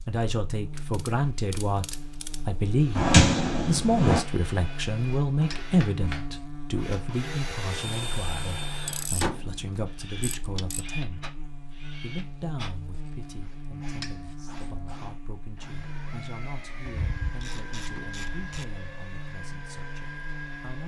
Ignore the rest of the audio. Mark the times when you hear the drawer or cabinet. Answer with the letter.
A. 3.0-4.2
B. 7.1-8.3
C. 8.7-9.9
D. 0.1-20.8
A.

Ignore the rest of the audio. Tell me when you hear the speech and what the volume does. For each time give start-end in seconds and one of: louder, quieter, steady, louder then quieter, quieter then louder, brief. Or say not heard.
0.1-20.8 quieter.